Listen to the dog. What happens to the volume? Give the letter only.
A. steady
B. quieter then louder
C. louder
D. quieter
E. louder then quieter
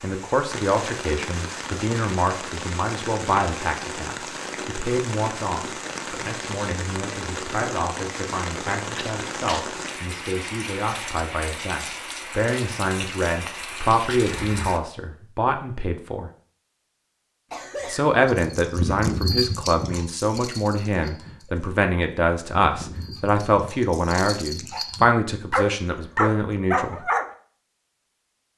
B.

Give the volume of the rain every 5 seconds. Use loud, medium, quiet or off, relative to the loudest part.
loud, loud, loud, off, off, off.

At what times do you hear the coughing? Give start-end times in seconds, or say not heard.
8.9-9.7, 17.5-18.1.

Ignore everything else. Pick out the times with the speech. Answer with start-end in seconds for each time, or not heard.
0.0-16.3, 17.9-27.0.